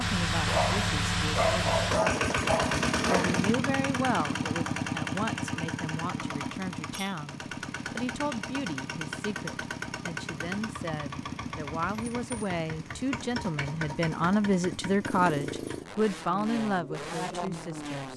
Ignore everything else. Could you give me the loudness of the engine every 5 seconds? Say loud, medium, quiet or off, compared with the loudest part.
loud, medium, medium, medium.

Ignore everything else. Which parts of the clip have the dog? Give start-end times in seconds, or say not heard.
0.5-3.4.